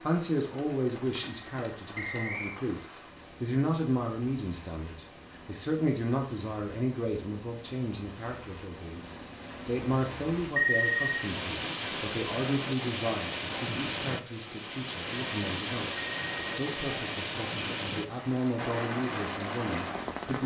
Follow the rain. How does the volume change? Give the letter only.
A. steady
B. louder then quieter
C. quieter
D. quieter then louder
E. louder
E.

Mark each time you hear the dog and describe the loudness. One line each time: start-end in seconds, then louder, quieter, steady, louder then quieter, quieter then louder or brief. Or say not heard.
not heard.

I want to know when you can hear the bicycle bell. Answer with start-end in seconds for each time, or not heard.
1.9-2.4, 10.6-11.2, 15.9-16.7.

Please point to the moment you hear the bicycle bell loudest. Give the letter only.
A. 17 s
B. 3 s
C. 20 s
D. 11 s
D.